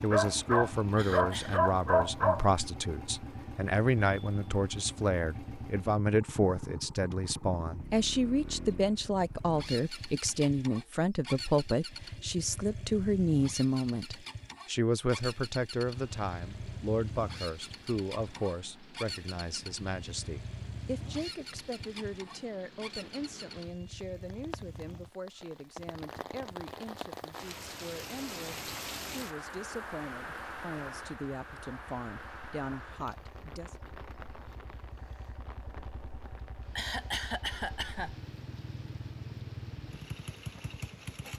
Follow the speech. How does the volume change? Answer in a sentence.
The loudness of the speech goes down.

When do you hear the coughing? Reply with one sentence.
The coughing can be heard from 0.9 to 1.6 s and from 36.8 to 38.1 s.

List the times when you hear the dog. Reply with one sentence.
You can hear the dog from 0.1 to 2.5 s.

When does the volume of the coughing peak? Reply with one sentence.
The volume of the coughing peaks at 37 seconds.